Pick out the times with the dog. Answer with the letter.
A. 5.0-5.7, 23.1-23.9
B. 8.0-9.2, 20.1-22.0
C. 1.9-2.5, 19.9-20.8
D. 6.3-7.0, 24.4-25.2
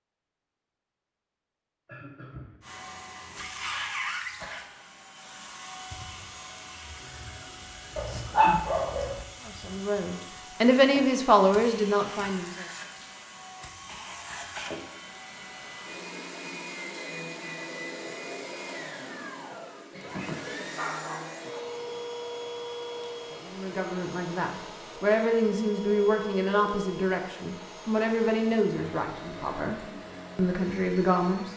B.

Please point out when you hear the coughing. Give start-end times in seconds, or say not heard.
1.9-2.5, 19.9-20.8.